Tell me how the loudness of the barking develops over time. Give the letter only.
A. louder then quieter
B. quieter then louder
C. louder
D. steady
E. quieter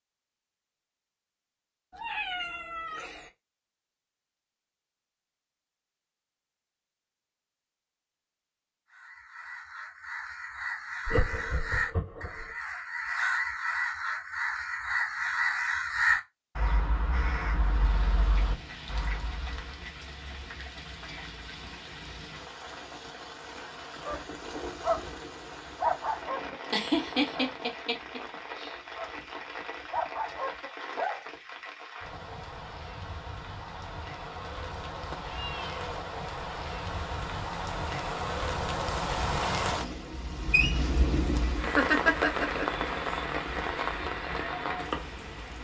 B.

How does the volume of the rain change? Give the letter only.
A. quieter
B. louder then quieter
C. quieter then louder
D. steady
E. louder
E.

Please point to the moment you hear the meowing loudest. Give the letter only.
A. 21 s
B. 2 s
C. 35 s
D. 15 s
B.